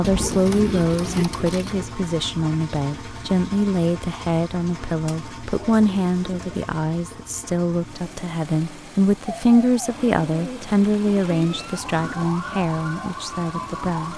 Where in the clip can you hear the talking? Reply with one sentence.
The talking can be heard from 0.0 to 14.1 s.